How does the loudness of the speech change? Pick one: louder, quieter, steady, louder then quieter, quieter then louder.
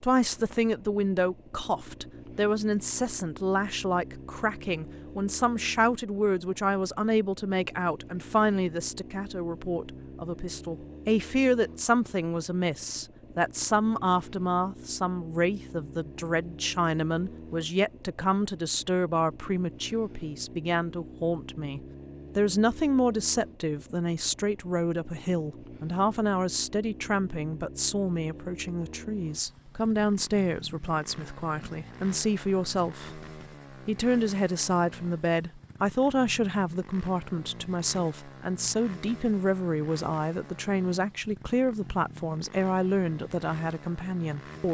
steady.